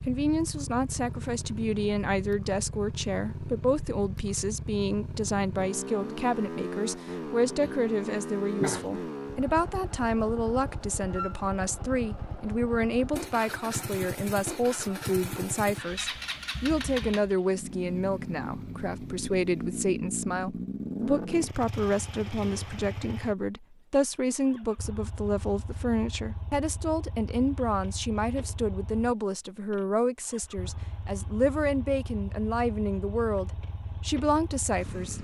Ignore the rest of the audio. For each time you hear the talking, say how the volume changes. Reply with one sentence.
The talking can be heard from 0.0 to 35.1 s, at a steady volume.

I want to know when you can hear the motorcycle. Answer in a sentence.
You can hear the motorcycle from 0.0 to 35.1 s.